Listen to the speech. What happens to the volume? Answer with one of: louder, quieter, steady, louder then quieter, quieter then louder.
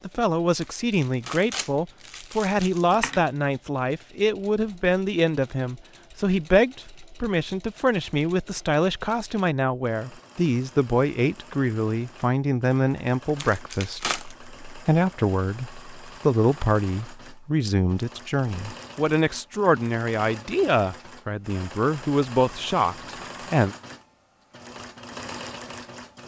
steady.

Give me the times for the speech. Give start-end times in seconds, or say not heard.
0.1-23.8.